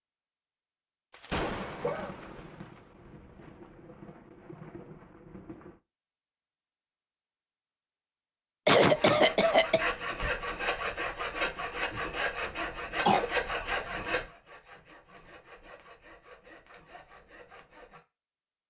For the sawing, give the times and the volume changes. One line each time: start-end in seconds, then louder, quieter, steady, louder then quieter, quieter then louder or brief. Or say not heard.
8.9-18.0 quieter.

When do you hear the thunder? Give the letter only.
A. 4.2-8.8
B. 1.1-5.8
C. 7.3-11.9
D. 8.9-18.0
B.